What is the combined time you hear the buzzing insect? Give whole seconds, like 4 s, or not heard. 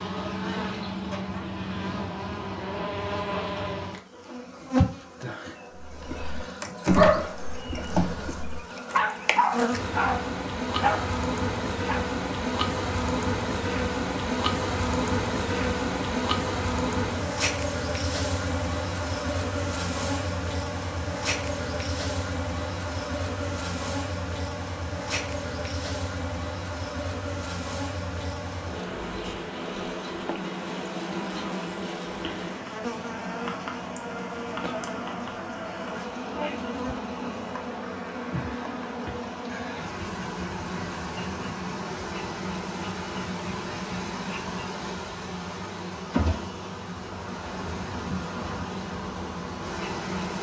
50 s.